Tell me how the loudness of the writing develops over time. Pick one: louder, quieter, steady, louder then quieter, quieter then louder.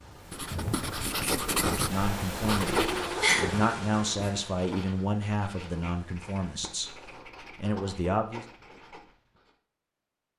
quieter.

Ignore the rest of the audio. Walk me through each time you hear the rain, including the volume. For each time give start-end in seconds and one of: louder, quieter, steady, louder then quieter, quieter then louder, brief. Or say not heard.
0.0-7.2 louder then quieter.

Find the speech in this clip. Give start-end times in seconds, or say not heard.
1.7-8.4.